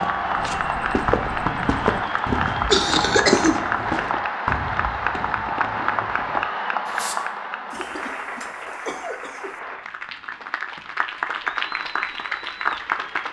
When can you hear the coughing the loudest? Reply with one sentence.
The loudest moment of the coughing is at 3 seconds.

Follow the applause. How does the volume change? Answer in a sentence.
The loudness of the applause goes down, then up.